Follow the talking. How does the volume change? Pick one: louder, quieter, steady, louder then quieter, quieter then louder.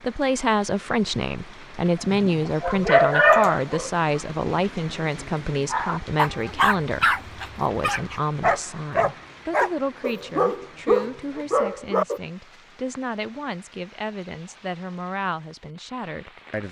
quieter.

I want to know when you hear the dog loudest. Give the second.
3 s.